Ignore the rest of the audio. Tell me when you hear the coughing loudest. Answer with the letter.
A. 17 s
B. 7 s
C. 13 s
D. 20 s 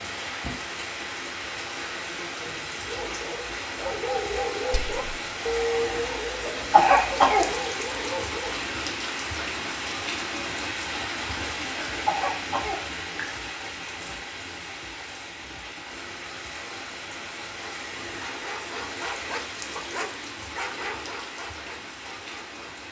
B.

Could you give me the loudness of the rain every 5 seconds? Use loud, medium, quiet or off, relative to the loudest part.
loud, loud, loud, medium, medium.